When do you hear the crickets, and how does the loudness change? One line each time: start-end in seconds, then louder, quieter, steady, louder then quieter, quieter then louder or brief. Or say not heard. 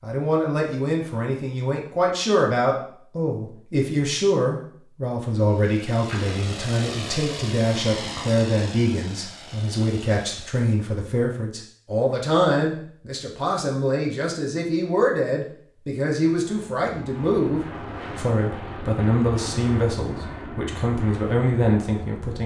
not heard.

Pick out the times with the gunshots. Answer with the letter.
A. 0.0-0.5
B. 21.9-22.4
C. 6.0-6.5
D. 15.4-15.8
C.